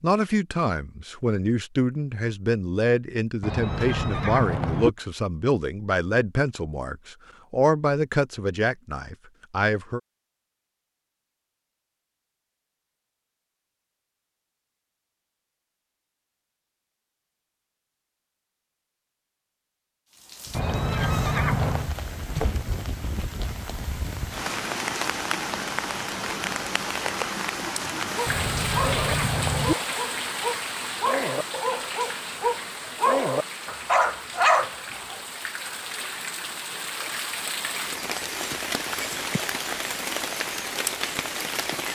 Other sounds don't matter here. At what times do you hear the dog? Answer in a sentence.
The dog can be heard from 28.1 to 35.2 s.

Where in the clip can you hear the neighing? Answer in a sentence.
The neighing can be heard from 3.4 to 4.9 s, from 20.5 to 21.9 s and from 28.2 to 29.8 s.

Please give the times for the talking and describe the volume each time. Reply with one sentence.
The talking can be heard from 0.0 to 10.0 s, at a steady volume.